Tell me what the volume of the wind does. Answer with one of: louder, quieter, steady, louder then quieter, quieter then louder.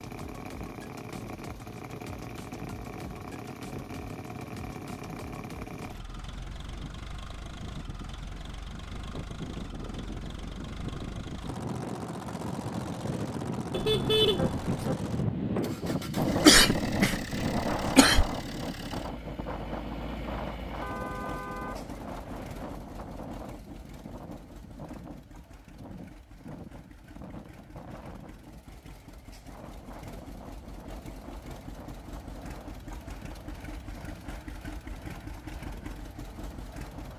louder then quieter.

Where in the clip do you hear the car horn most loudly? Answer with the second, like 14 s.
14 s.